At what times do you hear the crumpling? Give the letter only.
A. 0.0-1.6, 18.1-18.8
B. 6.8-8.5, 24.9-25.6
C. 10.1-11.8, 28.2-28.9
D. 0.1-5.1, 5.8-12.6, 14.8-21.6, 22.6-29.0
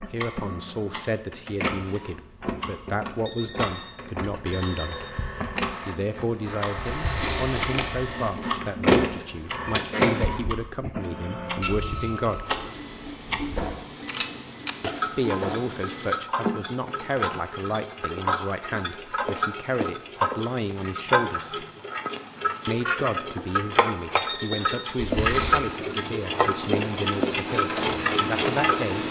B.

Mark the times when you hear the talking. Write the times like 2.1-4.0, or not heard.
0.1-5.1, 5.8-12.6, 14.8-21.6, 22.6-29.0.